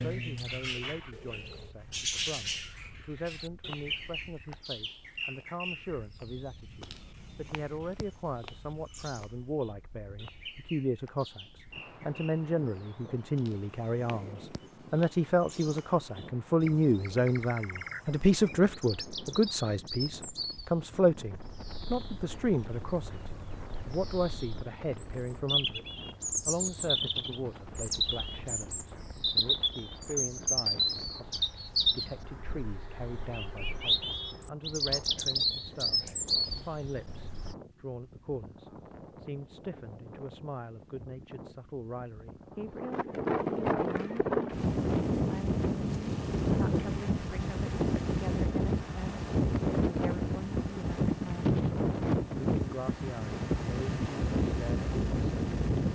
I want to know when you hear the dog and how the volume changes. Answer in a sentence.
You can't hear the dog here.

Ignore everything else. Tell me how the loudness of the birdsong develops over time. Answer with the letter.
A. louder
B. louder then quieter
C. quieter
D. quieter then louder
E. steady
D.